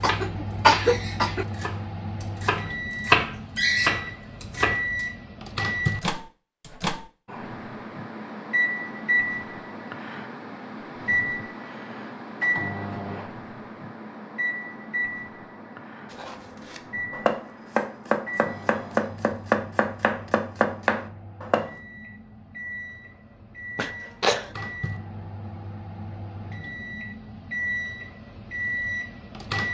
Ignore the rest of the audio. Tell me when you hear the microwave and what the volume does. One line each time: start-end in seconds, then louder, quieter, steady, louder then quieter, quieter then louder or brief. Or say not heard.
0.0-29.7 quieter then louder.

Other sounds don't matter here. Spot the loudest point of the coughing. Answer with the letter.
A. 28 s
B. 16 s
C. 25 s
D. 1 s
D.